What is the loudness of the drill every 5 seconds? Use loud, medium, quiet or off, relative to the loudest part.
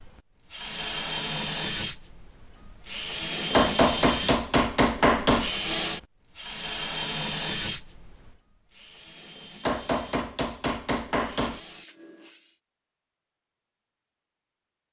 loud, loud, quiet.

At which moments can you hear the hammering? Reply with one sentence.
You can hear the hammering from 3.5 to 5.5 s and from 9.6 to 11.6 s.